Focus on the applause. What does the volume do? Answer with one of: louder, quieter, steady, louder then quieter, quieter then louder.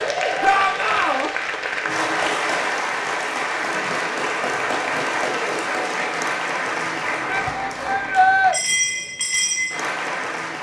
steady.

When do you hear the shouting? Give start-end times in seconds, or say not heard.
0.4-1.3, 7.2-8.6.